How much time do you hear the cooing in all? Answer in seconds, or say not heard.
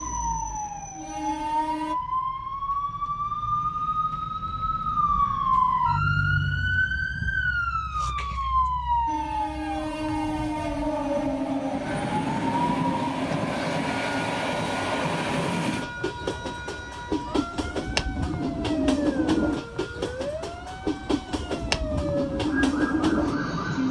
not heard.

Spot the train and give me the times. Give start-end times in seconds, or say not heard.
0.0-1.9, 9.1-23.8.